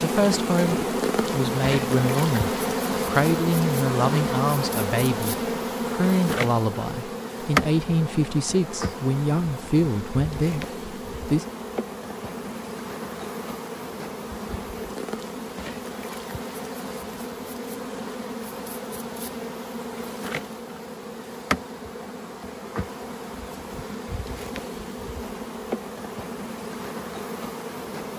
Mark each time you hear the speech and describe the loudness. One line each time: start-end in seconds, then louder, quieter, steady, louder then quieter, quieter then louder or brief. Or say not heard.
0.0-11.4 steady.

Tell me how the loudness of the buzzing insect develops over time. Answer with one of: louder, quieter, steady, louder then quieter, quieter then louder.
quieter.